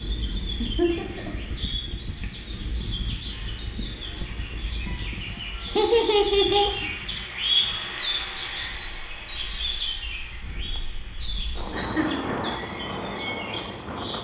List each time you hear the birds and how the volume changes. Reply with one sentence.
The birds can be heard from 0.0 to 14.1 s, getting louder then quieter.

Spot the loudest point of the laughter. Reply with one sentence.
The loudest moment of the laughter is at 6 seconds.